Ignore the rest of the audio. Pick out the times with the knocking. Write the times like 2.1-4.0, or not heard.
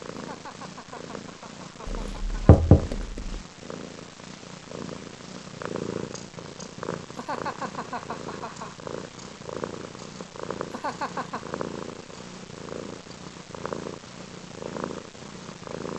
1.9-3.4.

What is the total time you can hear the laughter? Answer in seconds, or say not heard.
5 s.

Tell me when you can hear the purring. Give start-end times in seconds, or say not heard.
0.0-15.9.